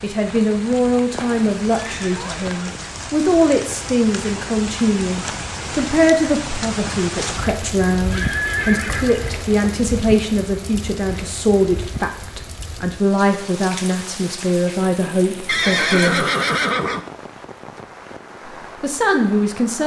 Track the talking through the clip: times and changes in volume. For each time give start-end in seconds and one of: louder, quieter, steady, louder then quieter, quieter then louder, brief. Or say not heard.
0.0-16.2 steady
18.8-19.8 brief.